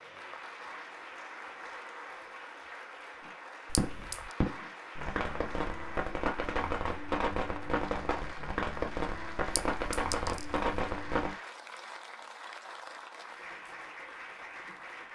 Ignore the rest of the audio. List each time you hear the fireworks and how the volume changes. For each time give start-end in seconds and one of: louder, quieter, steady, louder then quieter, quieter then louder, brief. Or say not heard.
3.2-11.3 steady.